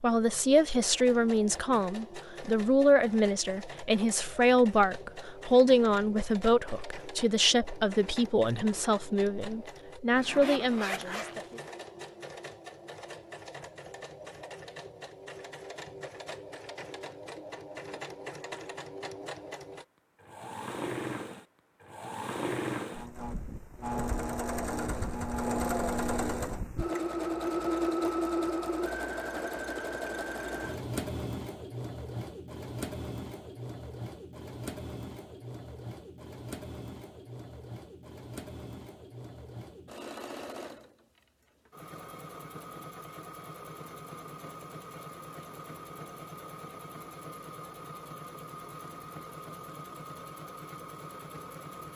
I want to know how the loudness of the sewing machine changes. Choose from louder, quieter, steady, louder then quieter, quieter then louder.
louder then quieter.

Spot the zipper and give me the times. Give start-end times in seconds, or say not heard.
10.2-11.7.